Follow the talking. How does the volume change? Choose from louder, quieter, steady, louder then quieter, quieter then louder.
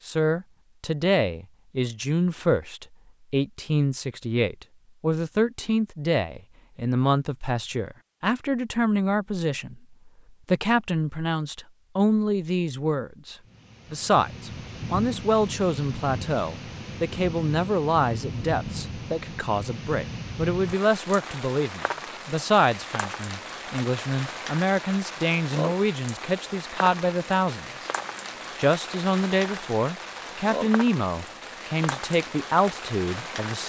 steady.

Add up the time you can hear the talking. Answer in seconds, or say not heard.
33 s.